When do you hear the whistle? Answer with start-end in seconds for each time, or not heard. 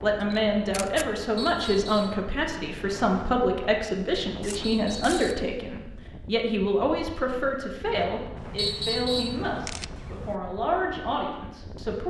1.4-2.2, 4.6-5.2, 8.6-9.4.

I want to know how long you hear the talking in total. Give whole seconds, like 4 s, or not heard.
12 s.